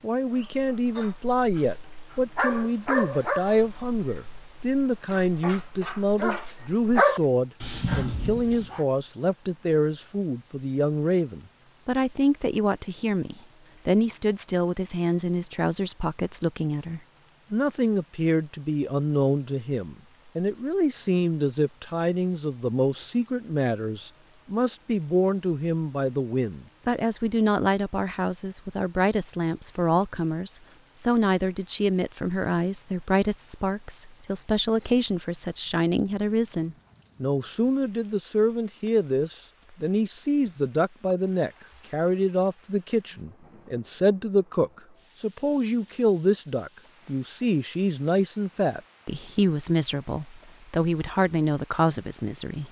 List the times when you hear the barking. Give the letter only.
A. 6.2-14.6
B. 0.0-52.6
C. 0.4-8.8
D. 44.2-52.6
C.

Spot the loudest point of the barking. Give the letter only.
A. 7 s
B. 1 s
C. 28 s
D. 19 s
A.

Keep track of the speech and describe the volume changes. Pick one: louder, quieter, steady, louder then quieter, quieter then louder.
steady.